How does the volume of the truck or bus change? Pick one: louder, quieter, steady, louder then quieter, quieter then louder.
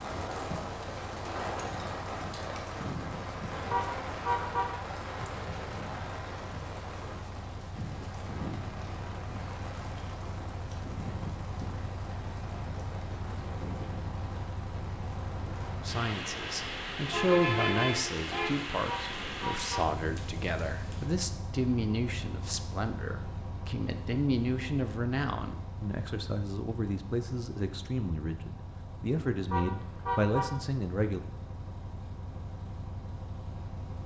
louder then quieter.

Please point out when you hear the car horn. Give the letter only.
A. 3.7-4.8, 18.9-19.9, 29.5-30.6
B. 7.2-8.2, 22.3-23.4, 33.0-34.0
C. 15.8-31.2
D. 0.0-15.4
A.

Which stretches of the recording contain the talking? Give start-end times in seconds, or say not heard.
15.8-31.2.